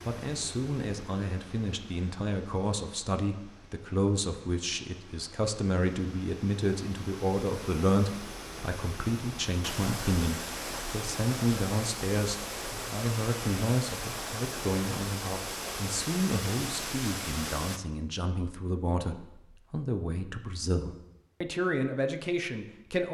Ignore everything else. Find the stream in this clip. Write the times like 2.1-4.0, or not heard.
0.0-17.8.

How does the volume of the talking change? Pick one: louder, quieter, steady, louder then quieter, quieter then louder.
steady.